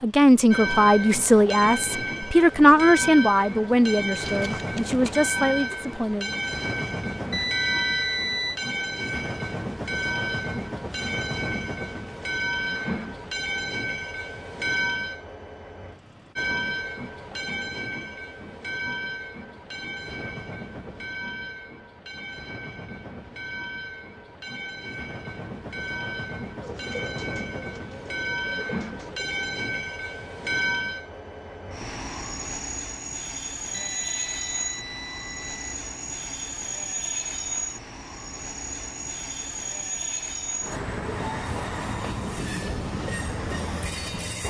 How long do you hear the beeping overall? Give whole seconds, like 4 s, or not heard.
3 s.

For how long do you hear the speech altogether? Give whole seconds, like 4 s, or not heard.
6 s.